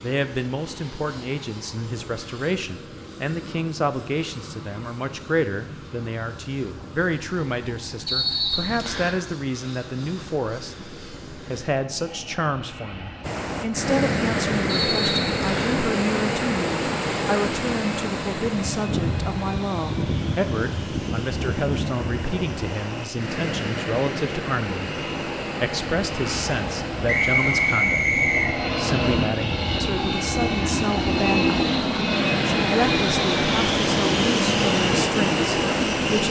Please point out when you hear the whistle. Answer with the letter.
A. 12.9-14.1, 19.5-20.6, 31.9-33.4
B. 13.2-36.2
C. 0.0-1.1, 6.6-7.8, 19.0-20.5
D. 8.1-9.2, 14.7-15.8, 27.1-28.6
D.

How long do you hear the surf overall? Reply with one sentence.
The surf can be heard for 23 seconds in total.